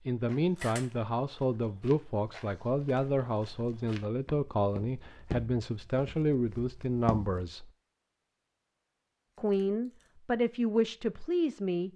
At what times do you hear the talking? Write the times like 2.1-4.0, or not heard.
0.1-7.7, 9.3-11.9.